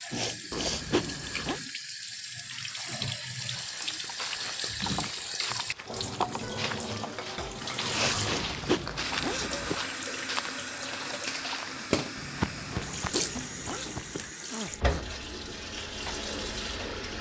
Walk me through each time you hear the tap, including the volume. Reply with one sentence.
You can hear the tap from 0.0 to 17.1 s, at a steady volume.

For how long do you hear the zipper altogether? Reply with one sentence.
You can hear the zipper for 4 seconds altogether.